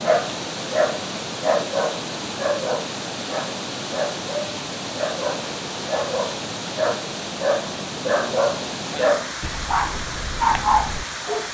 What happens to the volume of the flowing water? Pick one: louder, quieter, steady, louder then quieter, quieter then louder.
steady.